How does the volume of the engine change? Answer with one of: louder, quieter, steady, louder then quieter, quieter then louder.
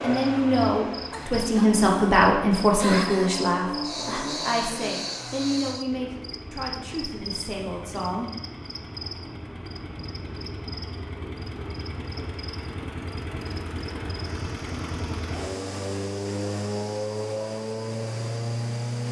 quieter then louder.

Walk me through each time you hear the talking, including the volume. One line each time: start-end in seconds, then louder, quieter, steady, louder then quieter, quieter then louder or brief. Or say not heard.
0.0-8.3 quieter.